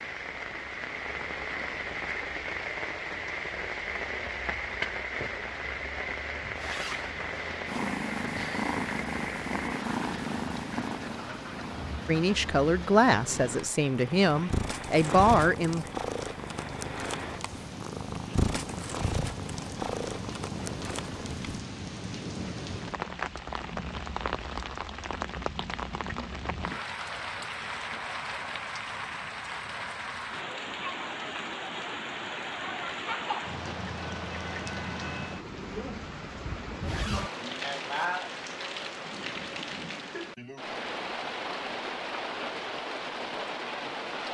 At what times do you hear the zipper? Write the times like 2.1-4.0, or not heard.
6.5-7.8, 36.8-38.0.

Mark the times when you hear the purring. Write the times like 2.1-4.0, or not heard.
7.7-21.6.